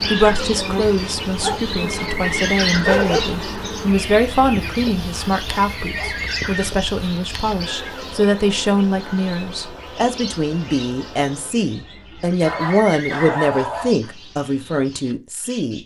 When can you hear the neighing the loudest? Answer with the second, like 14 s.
3 s.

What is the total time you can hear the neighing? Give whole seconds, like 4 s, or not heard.
3 s.